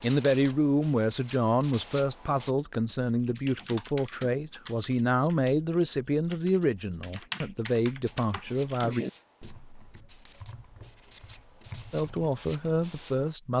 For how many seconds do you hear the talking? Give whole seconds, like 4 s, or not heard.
11 s.